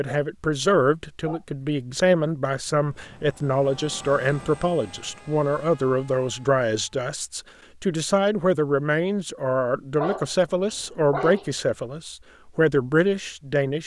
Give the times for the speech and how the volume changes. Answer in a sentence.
The speech can be heard from 0.0 to 13.8 s, at a steady volume.